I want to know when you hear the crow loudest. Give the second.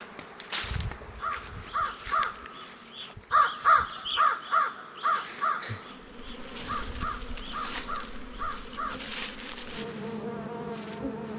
4 s.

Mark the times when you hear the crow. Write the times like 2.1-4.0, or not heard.
1.2-9.0.